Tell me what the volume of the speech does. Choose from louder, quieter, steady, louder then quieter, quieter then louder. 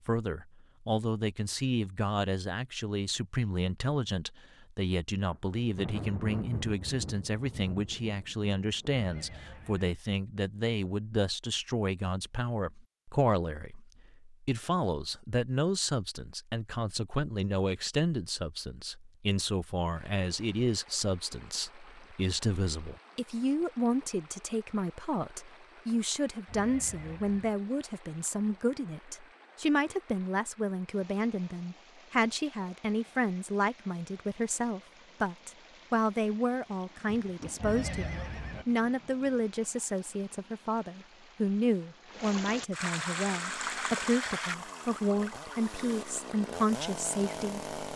steady.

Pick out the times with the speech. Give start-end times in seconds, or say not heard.
0.1-47.6.